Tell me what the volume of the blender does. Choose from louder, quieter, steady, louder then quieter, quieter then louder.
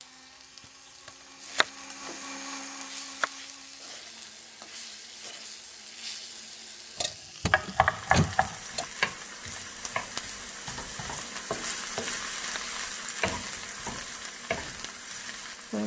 louder then quieter.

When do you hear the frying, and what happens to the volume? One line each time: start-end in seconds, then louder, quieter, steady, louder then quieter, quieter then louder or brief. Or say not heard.
0.0-15.8 louder.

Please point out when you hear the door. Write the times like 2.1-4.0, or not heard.
7.4-8.3.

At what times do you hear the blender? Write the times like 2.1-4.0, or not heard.
0.0-7.2.